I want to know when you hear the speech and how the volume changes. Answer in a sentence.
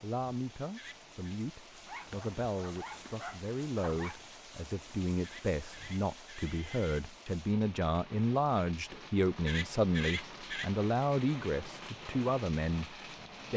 The speech can be heard from 0.0 to 13.5 s, getting louder.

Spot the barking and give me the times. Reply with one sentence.
The barking can be heard from 1.9 to 4.2 s.